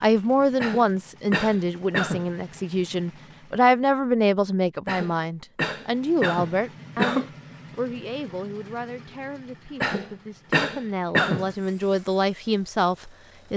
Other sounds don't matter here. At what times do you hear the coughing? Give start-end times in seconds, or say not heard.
0.6-2.3, 4.8-7.3, 9.8-11.9.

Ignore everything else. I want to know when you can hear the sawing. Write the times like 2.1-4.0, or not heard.
not heard.